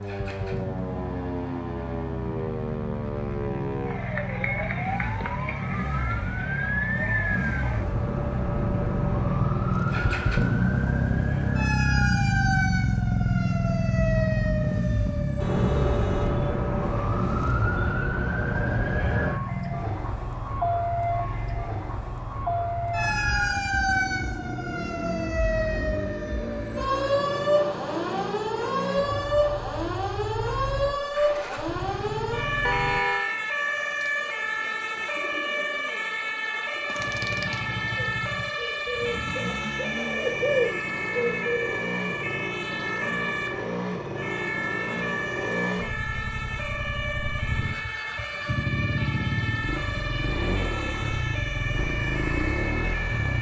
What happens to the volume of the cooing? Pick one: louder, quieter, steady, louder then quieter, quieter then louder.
louder.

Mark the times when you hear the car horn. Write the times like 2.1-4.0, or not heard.
15.4-16.5, 32.6-33.3.